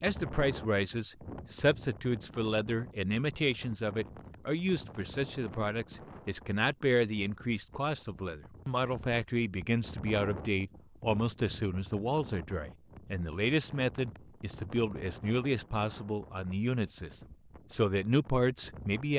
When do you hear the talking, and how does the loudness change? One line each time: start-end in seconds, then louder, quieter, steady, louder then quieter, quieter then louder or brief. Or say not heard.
0.0-19.1 steady.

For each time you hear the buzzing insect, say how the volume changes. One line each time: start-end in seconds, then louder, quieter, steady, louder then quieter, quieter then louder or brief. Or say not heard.
not heard.